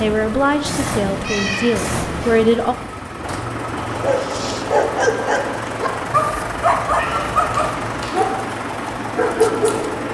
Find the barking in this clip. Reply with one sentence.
You can hear the barking from 3.9 to 9.9 s.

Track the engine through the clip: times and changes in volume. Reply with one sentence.
The engine can be heard from 0.0 to 10.0 s, at a steady volume.